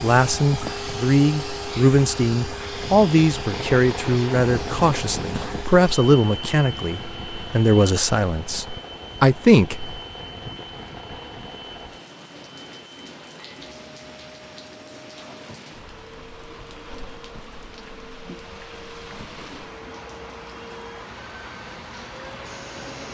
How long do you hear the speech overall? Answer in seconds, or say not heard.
10 s.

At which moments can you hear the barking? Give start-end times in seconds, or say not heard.
not heard.